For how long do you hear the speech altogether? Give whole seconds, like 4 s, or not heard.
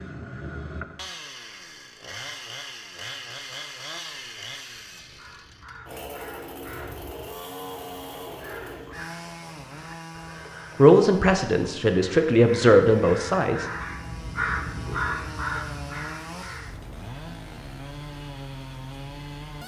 3 s.